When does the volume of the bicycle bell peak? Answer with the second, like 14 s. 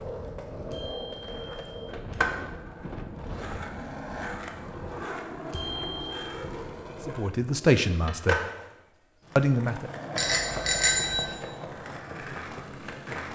11 s.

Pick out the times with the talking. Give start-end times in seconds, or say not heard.
7.0-8.4, 9.3-9.9.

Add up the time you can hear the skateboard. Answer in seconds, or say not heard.
13 s.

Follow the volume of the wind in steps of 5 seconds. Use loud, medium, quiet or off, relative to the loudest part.
loud, loud, off.